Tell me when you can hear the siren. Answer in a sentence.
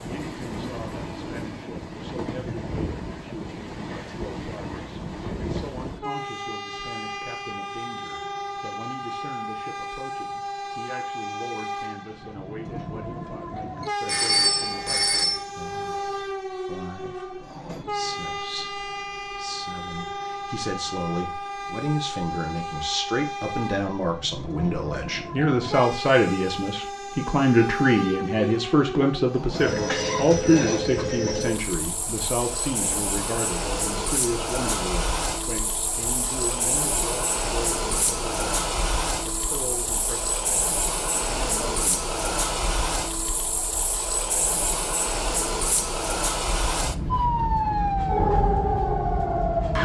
You can hear the siren from 47.1 to 49.8 s.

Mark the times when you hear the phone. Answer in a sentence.
The phone can be heard from 14.1 to 15.4 s and from 29.6 to 31.6 s.